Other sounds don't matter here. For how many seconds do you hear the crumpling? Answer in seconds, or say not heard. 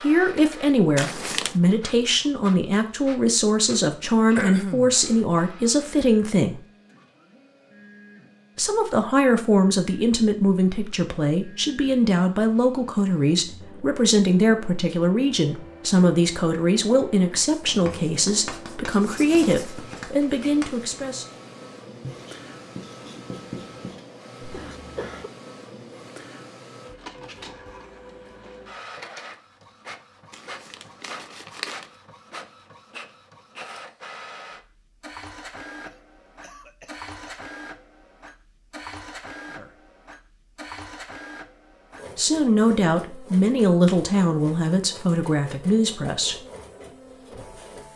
2 s.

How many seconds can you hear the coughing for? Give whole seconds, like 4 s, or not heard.
3 s.